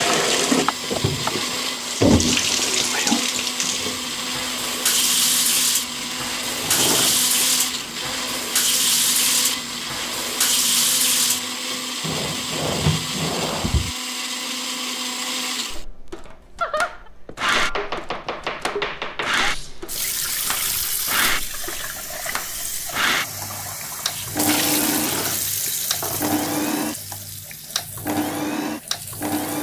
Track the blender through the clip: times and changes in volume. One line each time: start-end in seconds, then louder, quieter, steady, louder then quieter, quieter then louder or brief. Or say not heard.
0.1-29.5 steady.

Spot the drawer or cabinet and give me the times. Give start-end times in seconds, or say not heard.
6.5-7.3, 12.0-13.9, 24.9-26.4.